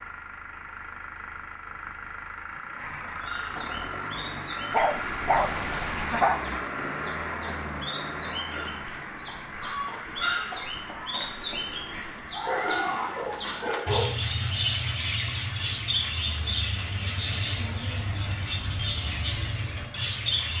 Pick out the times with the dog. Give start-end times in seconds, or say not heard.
4.7-6.4, 12.3-14.1.